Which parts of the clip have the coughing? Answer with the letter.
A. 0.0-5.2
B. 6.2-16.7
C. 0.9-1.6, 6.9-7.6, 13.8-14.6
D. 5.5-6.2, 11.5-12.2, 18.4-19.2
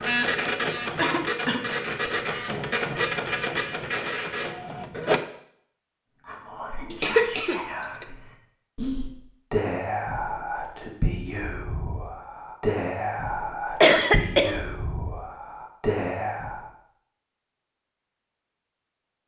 C.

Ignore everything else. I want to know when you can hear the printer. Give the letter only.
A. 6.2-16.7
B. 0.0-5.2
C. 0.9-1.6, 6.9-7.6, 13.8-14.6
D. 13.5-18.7
B.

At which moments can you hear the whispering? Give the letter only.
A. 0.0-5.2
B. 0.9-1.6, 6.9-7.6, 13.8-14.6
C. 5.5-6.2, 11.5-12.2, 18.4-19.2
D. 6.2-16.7
D.